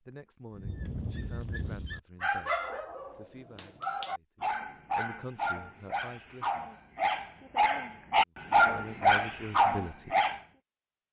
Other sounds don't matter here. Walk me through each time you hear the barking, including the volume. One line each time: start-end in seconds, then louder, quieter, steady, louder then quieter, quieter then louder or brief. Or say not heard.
0.6-10.4 louder.